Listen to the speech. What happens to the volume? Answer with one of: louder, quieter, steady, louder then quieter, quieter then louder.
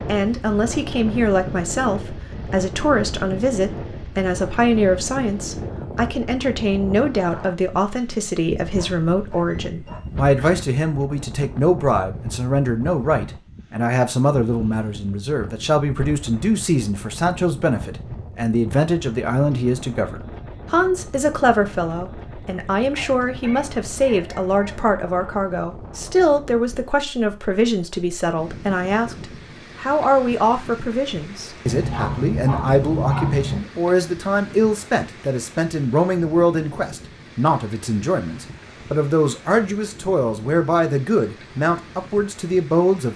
steady.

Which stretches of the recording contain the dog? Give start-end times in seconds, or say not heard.
8.8-10.5, 22.9-24.8, 31.6-33.6.